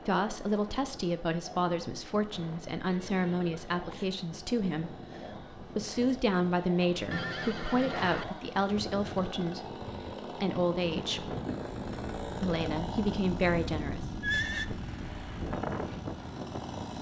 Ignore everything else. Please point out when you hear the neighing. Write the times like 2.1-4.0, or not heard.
2.8-4.0, 7.1-8.2, 14.2-14.7.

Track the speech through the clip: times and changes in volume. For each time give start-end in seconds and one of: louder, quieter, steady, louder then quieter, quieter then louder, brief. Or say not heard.
0.0-11.3 steady
12.4-14.1 brief.